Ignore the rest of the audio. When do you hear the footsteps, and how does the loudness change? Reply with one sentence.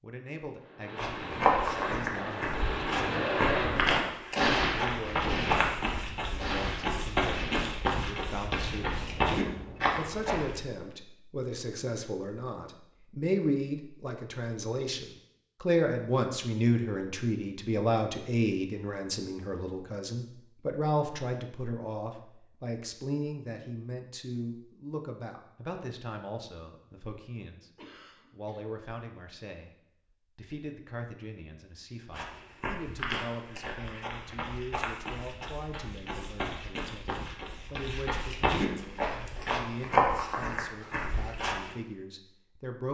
You can hear the footsteps from 0.9 to 10.7 s, at a steady volume; and from 32.1 to 41.8 s, getting louder.